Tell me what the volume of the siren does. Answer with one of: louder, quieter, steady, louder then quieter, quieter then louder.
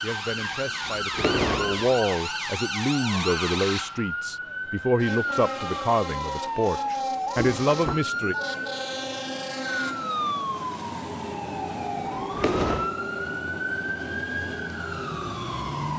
steady.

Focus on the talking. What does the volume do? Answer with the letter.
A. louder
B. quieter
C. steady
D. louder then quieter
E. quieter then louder
A.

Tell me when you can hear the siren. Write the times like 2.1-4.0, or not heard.
0.0-15.9.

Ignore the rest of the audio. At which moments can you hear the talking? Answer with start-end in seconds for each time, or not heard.
0.0-8.3.